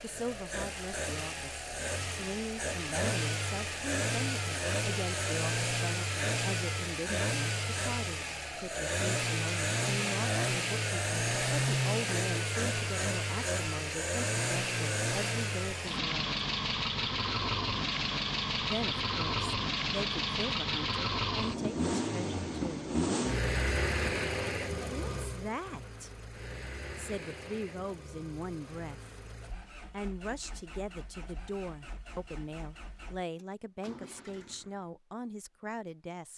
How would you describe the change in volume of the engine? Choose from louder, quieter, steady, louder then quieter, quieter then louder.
quieter.